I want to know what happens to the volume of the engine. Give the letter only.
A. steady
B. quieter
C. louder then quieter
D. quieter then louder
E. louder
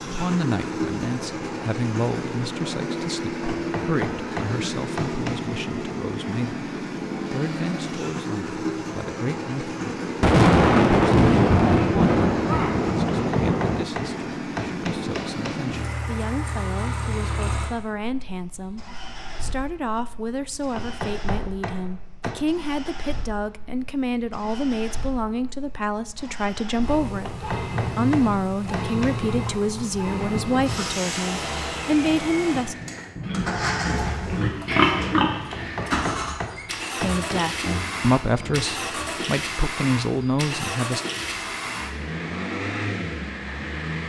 D.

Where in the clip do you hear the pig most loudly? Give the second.
35 s.